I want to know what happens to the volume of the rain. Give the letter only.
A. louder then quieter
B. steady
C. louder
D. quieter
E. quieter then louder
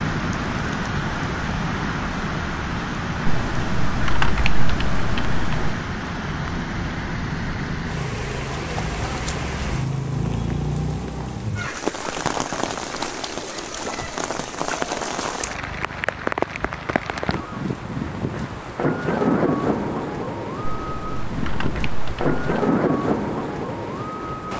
B.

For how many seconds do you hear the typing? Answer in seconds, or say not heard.
4 s.